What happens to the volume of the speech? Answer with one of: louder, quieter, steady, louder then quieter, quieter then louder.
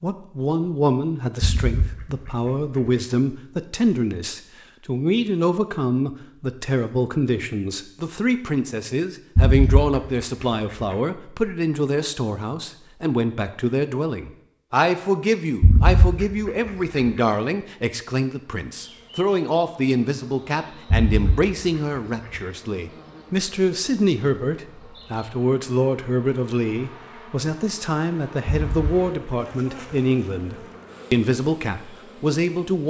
steady.